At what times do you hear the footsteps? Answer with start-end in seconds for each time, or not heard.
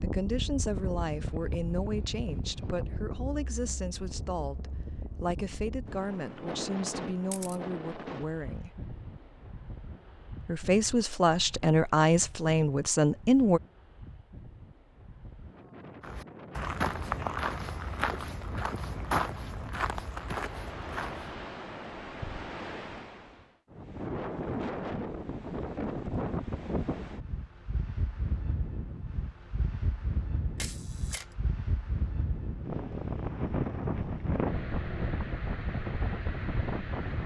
16.0-21.4.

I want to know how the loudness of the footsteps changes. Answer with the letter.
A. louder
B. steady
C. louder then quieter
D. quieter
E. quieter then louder
D.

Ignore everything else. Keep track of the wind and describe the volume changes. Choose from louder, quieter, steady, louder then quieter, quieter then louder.
quieter then louder.